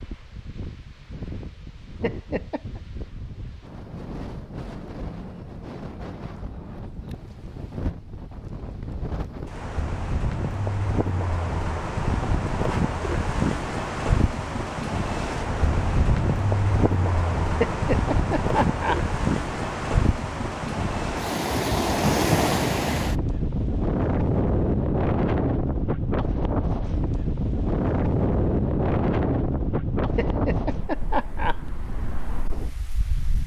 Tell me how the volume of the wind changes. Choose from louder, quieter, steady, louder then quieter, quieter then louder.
louder.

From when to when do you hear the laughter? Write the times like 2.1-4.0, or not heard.
2.0-2.8, 17.6-19.0, 30.1-31.6.